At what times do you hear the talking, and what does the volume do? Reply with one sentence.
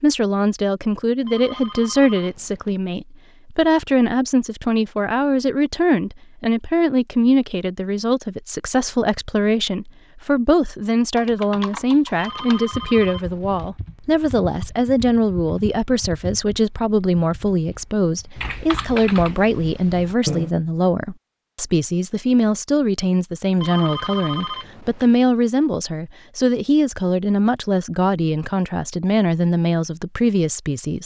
You can hear the talking from 0.0 to 31.0 s, at a steady volume.